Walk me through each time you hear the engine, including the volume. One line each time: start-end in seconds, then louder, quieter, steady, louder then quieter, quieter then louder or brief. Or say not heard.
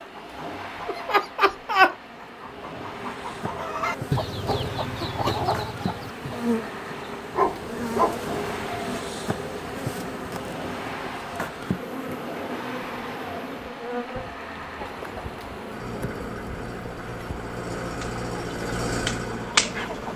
0.0-20.1 louder.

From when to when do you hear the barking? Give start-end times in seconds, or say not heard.
7.3-8.2.